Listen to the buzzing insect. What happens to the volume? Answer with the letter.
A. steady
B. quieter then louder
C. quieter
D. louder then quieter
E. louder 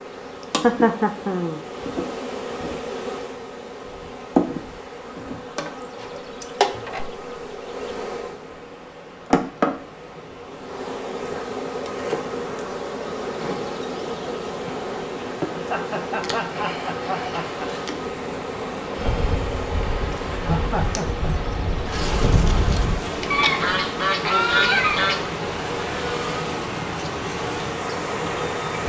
A.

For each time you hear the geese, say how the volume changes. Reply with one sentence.
You can hear the geese from 18.9 to 25.2 s, getting louder.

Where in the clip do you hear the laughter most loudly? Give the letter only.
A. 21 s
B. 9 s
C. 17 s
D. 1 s
D.